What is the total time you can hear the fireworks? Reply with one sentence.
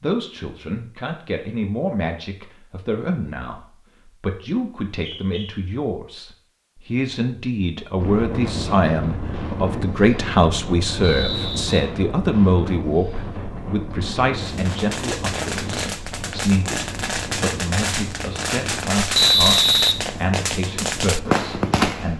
You can hear the fireworks for 8 seconds altogether.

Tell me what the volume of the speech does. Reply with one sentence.
The volume of the speech goes up, then down.